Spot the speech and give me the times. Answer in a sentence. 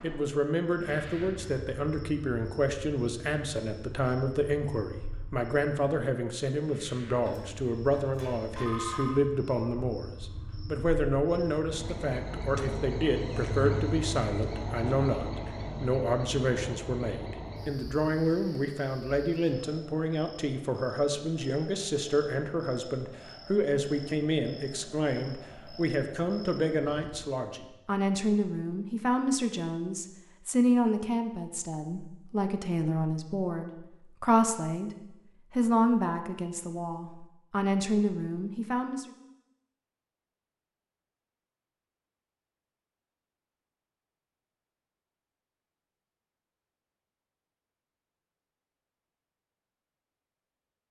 The speech can be heard from 0.0 to 34.9 s and from 35.5 to 39.1 s.